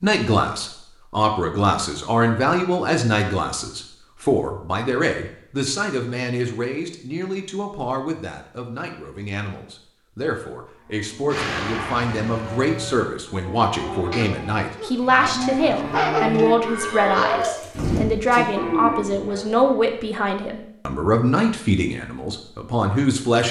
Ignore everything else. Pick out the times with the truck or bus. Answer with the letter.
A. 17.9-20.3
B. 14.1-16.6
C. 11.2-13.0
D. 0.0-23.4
C.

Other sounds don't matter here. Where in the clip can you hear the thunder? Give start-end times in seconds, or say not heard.
not heard.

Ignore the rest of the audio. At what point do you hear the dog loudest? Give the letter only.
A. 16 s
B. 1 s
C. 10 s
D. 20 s
A.